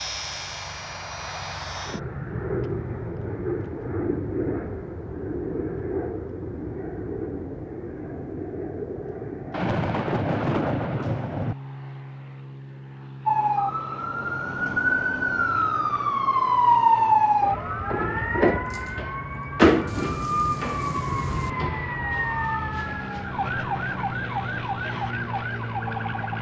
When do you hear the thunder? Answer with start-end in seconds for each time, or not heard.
9.5-11.6, 19.9-21.5.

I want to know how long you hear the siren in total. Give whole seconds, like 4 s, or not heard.
13 s.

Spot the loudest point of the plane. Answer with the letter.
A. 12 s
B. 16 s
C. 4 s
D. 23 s
C.